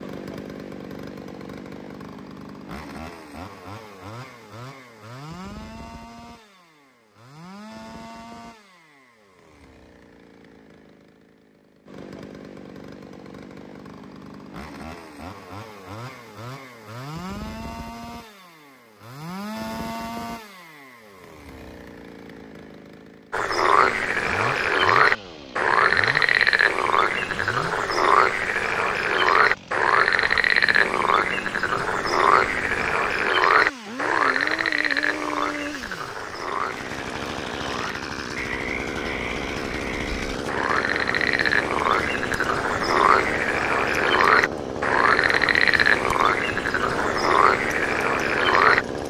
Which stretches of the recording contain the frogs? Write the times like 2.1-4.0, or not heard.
23.3-48.9.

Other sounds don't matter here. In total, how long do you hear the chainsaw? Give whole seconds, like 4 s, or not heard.
49 s.